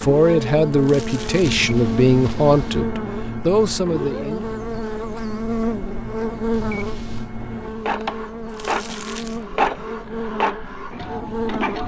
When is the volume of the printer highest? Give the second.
10 s.